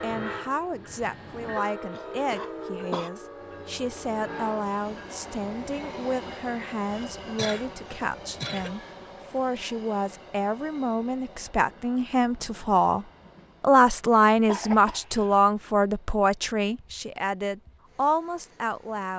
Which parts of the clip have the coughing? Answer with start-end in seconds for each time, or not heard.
1.9-3.1, 6.9-8.8, 14.4-15.3.